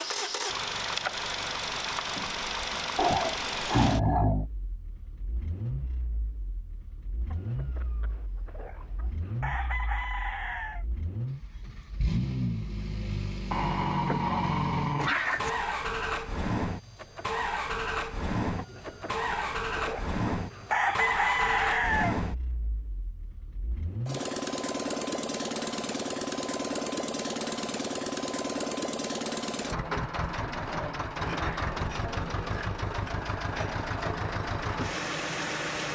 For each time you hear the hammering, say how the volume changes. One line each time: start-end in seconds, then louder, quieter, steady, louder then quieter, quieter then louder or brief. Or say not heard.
not heard.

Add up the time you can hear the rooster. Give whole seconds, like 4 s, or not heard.
7 s.